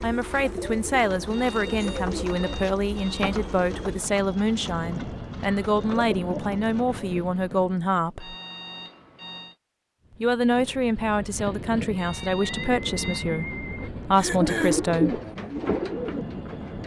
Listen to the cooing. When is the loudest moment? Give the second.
15 s.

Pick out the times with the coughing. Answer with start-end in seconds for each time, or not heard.
14.2-14.8.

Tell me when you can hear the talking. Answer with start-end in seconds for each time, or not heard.
0.0-8.3, 10.2-15.2.